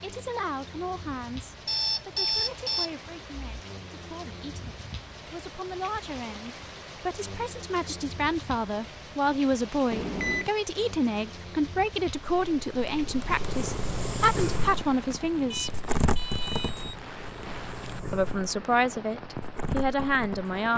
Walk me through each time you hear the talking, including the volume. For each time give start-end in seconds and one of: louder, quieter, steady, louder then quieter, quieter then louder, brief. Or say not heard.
0.0-15.7 louder
18.1-20.7 brief.